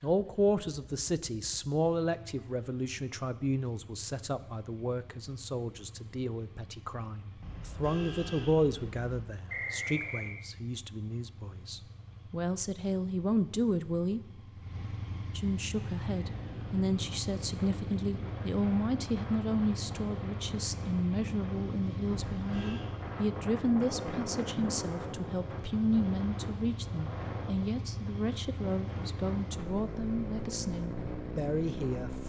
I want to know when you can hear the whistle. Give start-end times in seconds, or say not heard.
9.4-10.3.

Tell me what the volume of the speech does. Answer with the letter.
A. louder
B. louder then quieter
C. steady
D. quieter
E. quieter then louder
C.